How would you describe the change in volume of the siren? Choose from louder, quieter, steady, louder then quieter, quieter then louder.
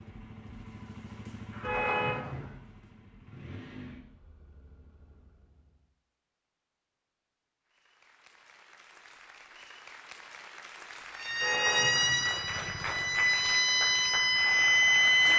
quieter then louder.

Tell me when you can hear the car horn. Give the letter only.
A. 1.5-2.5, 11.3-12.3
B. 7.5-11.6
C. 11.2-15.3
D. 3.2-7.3
A.